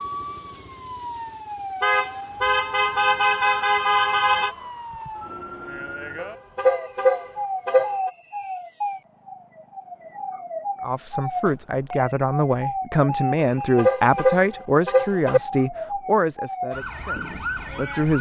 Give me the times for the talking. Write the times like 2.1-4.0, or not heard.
10.8-18.1.